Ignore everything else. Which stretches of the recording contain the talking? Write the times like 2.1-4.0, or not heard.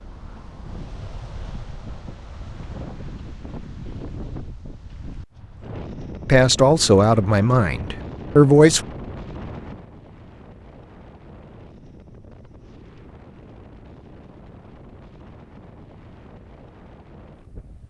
6.2-8.8.